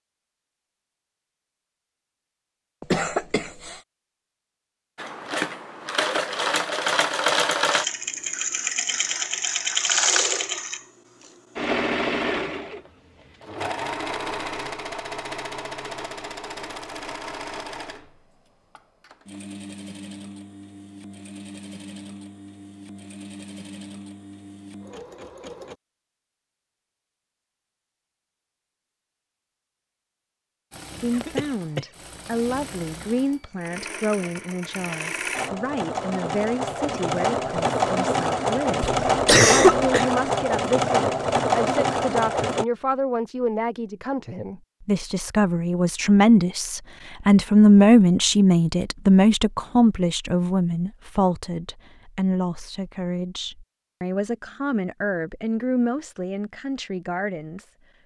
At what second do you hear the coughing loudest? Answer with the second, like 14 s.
40 s.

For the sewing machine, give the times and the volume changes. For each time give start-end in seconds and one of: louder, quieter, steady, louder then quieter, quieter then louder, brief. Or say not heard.
5.0-25.8 quieter
30.7-42.6 louder.